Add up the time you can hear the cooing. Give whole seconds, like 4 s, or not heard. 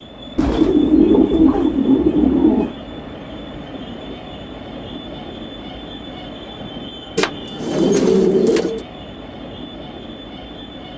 4 s.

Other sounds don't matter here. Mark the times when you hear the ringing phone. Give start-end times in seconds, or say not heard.
not heard.